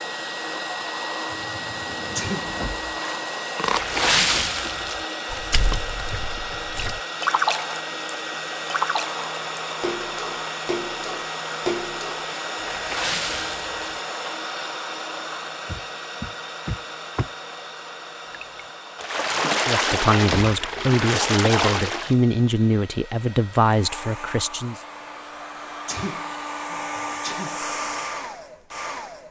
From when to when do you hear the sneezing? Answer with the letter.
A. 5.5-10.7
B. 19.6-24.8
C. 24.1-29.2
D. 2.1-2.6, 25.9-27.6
D.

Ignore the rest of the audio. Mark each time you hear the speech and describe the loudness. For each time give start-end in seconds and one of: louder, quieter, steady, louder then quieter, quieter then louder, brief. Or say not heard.
19.6-24.8 steady.